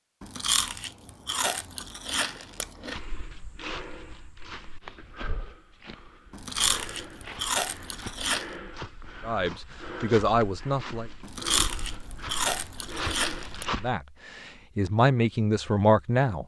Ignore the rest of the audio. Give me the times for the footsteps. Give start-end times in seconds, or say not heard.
2.9-13.9.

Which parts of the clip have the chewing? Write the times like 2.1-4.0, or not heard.
0.2-3.0, 6.3-8.5, 11.2-13.7.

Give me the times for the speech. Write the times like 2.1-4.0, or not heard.
9.2-11.1, 13.8-16.4.